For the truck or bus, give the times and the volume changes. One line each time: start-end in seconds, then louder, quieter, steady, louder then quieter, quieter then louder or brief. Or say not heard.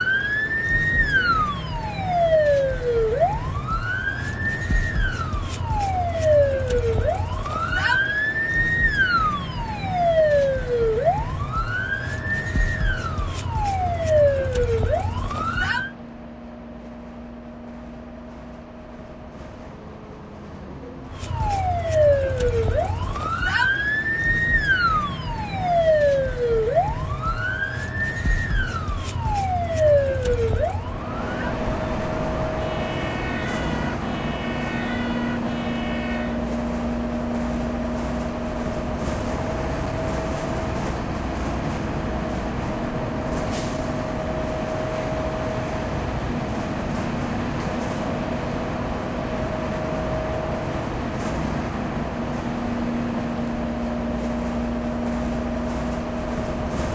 0.0-56.9 louder.